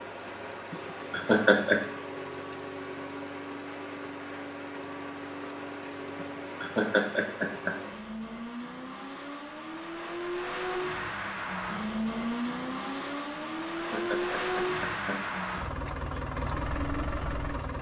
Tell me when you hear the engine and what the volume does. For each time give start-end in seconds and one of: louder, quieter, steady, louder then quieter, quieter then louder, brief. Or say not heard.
0.0-17.7 louder.